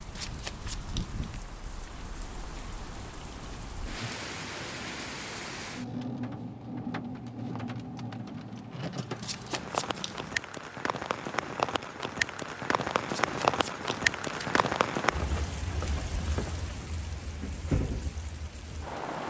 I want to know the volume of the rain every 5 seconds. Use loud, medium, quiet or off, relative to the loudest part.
medium, medium, loud, medium.